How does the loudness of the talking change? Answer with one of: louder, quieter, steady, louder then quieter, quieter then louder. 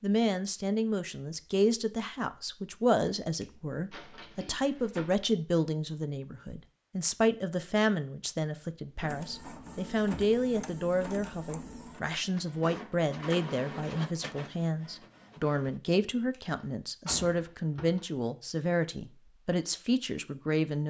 steady.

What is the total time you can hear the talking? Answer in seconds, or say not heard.
21 s.